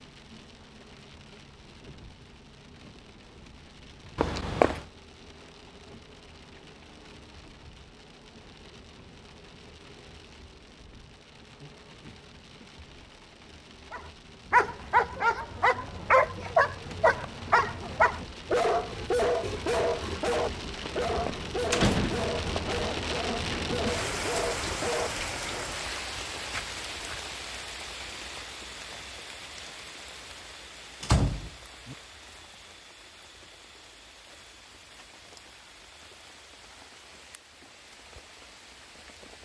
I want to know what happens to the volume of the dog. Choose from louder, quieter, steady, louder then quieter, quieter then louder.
quieter.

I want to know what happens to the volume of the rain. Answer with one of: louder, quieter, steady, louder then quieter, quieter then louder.
louder then quieter.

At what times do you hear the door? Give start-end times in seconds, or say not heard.
4.2-4.8, 21.1-22.6, 31.0-31.9.